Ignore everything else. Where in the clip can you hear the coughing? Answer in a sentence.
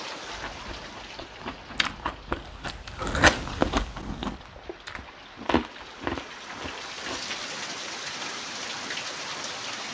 The coughing can't be heard in this clip.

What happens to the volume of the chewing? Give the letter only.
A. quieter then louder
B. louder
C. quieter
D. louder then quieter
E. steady
D.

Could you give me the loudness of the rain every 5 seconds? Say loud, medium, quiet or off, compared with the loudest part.
medium, loud.